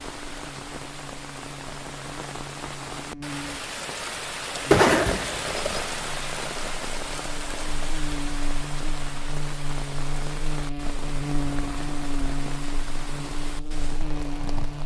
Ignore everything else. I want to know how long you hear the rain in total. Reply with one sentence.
You can hear the rain for 15 seconds altogether.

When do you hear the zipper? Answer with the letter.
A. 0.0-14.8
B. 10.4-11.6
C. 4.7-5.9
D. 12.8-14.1
C.